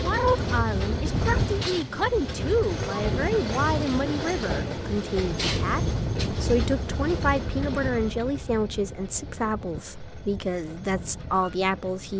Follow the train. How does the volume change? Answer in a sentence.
The loudness of the train goes down.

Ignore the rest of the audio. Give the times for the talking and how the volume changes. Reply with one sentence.
You can hear the talking from 0.0 to 12.1 s, at a steady volume.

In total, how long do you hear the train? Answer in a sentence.
You can hear the train for 12 seconds altogether.